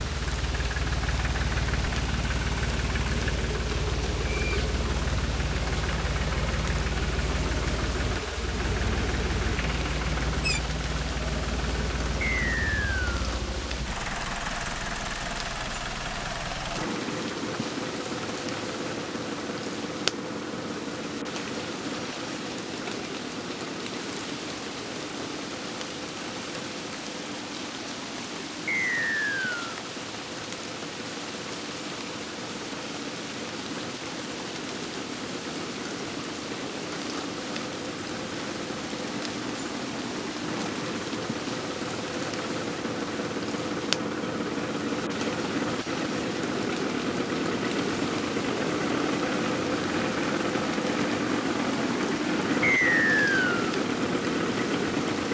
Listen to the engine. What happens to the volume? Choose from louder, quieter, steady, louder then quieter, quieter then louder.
quieter then louder.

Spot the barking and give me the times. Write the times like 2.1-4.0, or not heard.
not heard.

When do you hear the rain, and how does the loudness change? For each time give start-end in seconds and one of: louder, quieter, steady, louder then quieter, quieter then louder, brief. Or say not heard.
0.0-55.2 steady.